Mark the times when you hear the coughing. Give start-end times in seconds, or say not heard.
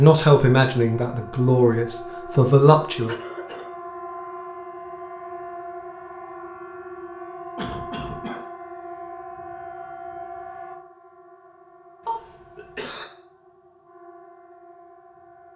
3.0-3.6, 7.5-8.4, 12.1-13.1.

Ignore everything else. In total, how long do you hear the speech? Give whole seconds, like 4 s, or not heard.
3 s.